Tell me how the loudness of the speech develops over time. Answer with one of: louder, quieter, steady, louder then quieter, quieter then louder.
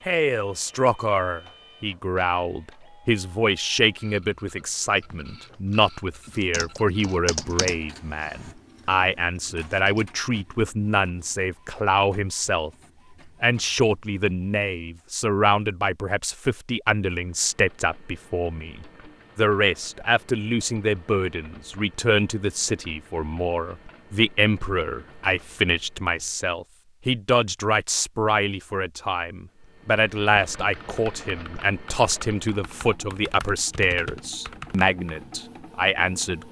steady.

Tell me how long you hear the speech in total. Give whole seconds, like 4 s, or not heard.
36 s.